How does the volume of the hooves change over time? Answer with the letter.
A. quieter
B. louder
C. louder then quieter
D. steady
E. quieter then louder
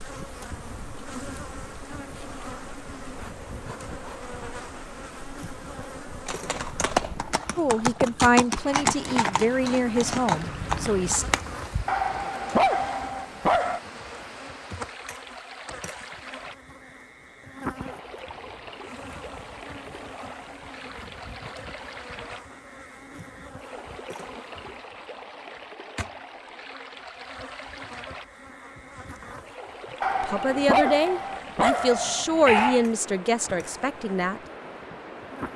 A.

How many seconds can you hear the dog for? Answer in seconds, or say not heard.
5 s.